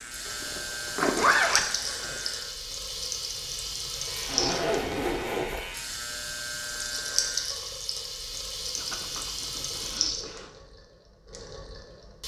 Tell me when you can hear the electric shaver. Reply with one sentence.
The electric shaver can be heard from 0.0 to 2.5 s and from 3.9 to 7.5 s.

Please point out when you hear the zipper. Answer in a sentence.
You can hear the zipper from 0.2 to 2.2 s, from 4.2 to 5.7 s and from 8.8 to 10.6 s.